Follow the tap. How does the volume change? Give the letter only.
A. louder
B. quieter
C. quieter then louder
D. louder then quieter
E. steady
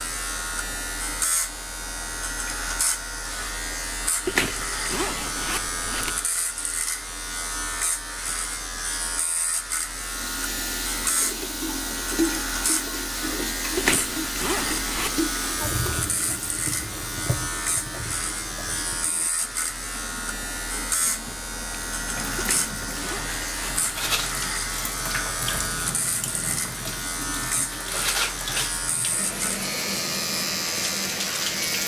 C.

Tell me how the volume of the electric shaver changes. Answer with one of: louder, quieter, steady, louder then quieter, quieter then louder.
steady.